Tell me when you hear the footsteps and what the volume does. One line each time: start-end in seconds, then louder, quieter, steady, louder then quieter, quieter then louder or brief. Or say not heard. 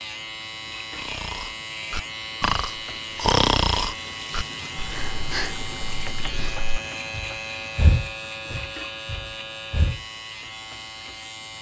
not heard.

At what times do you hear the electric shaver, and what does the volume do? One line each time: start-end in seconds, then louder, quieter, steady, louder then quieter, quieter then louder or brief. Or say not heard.
0.0-11.5 steady.